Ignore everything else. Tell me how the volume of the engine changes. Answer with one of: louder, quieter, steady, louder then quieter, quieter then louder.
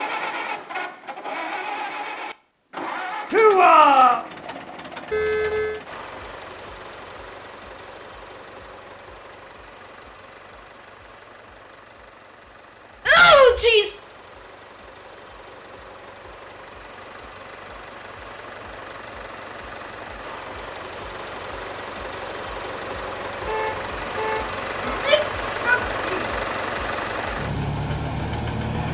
quieter then louder.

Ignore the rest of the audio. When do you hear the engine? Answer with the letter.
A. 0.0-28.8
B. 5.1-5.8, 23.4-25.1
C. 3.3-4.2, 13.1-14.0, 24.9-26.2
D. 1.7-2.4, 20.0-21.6
A.